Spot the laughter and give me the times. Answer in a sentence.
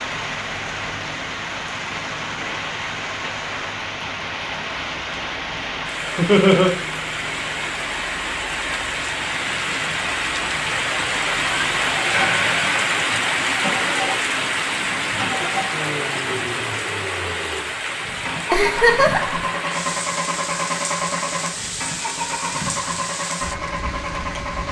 You can hear the laughter from 6.2 to 6.7 s, from 12.1 to 12.9 s and from 18.5 to 19.4 s.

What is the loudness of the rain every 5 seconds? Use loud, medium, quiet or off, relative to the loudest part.
medium, medium, loud, medium, medium.